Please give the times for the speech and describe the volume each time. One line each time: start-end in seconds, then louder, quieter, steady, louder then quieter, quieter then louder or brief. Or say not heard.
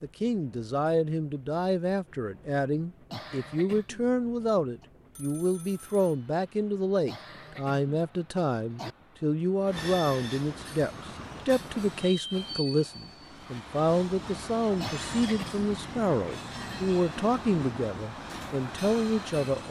0.0-19.6 steady.